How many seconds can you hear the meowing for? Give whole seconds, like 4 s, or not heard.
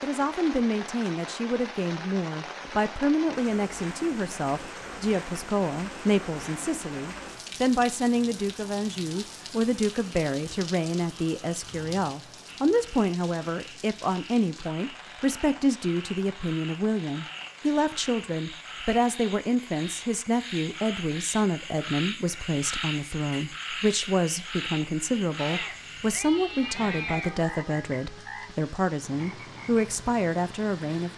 2 s.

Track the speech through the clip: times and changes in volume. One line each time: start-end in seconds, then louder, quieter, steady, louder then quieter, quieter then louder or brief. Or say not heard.
0.0-31.1 steady.